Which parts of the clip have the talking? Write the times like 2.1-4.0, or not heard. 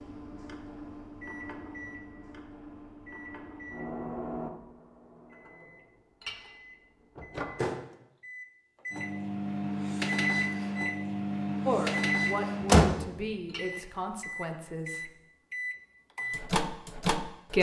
11.7-15.1.